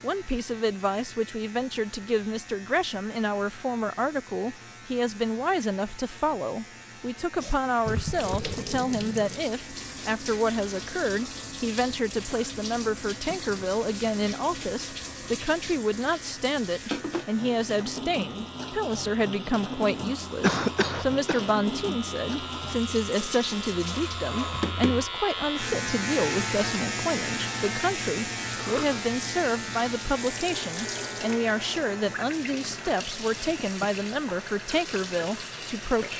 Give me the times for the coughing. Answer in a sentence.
You can hear the coughing from 7.8 to 8.8 s, from 20.4 to 21.4 s and from 28.6 to 29.0 s.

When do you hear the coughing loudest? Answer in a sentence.
The volume of the coughing peaks at 21 seconds.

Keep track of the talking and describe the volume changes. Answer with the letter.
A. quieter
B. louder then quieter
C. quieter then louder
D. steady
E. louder
D.